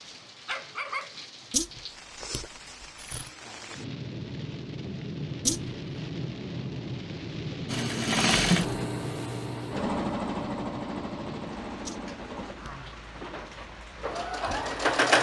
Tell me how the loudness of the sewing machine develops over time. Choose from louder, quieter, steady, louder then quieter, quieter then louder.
quieter then louder.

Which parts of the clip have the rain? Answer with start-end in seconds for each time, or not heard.
0.0-15.1.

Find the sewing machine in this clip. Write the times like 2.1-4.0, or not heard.
7.7-15.1.